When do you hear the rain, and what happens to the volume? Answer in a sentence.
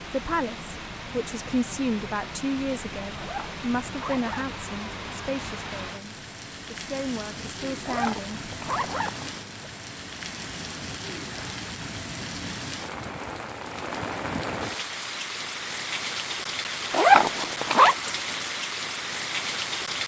You can hear the rain from 0.0 to 20.0 s, getting louder.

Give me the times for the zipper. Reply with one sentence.
The zipper can be heard from 3.1 to 4.5 s, from 7.8 to 9.4 s and from 16.9 to 17.9 s.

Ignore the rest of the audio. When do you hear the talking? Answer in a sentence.
The talking can be heard from 0.0 to 8.5 s.